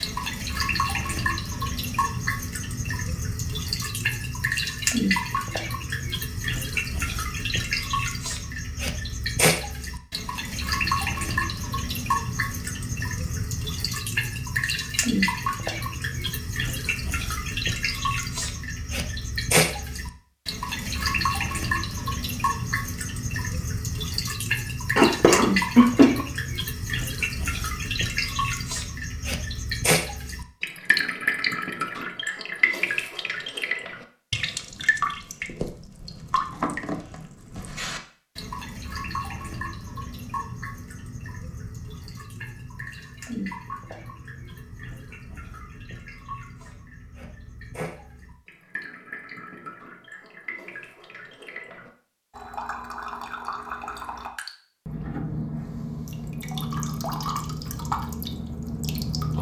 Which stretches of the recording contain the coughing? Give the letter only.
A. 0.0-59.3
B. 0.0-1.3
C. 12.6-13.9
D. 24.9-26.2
D.